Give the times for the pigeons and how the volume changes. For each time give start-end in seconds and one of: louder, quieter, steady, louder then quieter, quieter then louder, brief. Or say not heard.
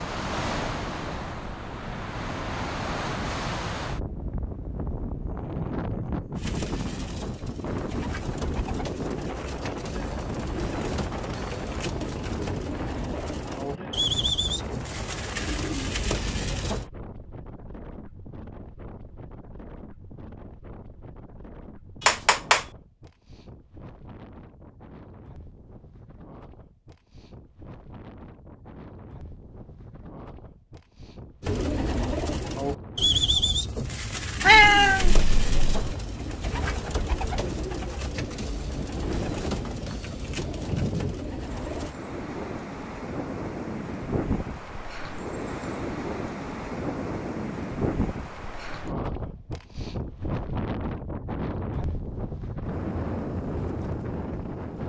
6.3-16.9 louder
31.4-42.0 quieter.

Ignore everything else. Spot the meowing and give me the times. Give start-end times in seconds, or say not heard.
22.1-22.6, 34.4-36.0.